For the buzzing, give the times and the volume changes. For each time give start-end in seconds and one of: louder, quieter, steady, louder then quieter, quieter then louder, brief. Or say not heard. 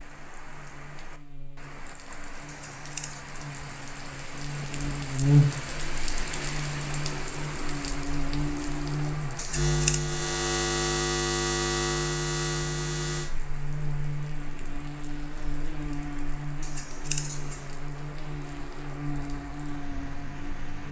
0.0-20.8 louder then quieter.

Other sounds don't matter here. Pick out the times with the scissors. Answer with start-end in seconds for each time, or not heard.
2.5-3.2, 9.3-10.1, 16.6-17.6.